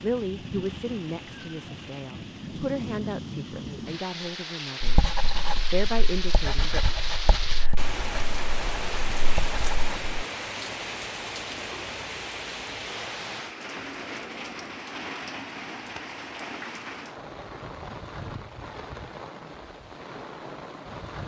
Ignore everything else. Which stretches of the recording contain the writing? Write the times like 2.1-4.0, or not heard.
4.8-10.2.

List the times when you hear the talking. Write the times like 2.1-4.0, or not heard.
0.0-6.8.